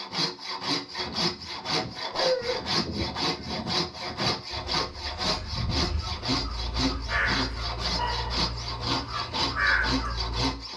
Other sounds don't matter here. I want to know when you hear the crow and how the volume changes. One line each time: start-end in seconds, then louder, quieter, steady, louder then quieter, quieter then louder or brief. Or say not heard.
0.9-10.7 louder.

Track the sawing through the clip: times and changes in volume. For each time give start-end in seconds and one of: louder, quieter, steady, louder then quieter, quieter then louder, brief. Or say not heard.
0.0-10.7 steady.